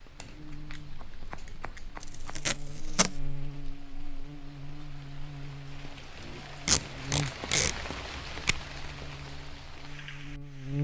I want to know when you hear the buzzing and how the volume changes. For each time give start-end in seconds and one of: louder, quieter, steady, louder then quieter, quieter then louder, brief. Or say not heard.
0.0-10.8 louder then quieter.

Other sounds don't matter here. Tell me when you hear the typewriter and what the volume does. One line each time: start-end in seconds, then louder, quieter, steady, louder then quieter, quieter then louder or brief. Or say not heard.
not heard.